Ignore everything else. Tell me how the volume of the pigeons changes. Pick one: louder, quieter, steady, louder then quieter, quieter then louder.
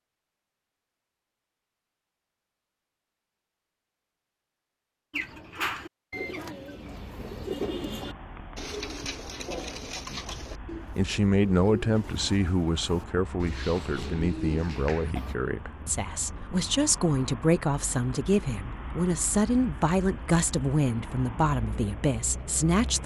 quieter then louder.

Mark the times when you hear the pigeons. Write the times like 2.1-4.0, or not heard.
5.1-15.3.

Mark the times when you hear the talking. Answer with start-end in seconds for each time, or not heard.
10.1-23.0.